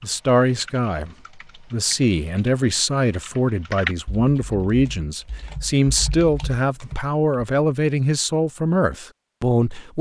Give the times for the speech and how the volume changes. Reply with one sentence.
The speech can be heard from 0.0 to 9.9 s, at a steady volume.